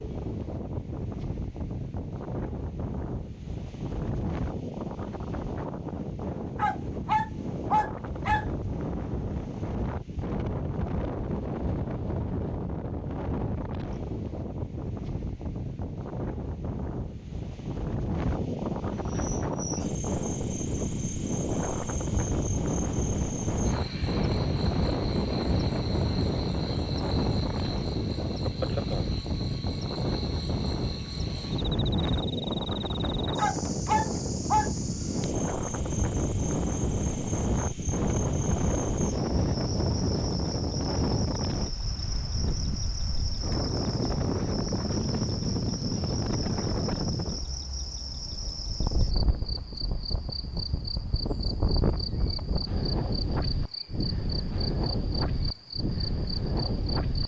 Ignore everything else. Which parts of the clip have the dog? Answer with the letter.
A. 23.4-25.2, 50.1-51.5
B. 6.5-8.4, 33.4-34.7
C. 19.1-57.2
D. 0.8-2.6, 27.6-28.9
B.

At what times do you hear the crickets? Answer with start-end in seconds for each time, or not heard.
19.1-57.2.